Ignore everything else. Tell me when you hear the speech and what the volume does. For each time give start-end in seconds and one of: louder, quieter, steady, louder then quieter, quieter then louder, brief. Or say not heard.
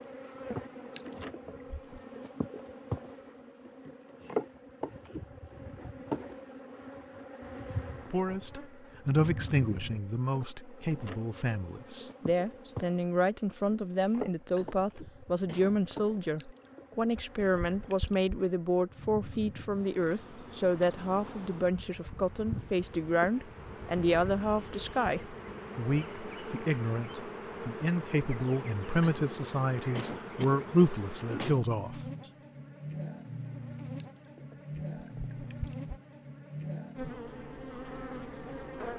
7.9-32.0 steady.